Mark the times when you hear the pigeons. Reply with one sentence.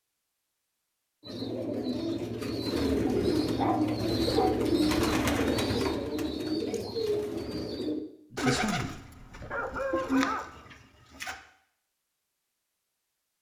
The pigeons can be heard from 1.2 to 11.4 s.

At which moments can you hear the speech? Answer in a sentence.
The speech can be heard from 8.3 to 9.0 s.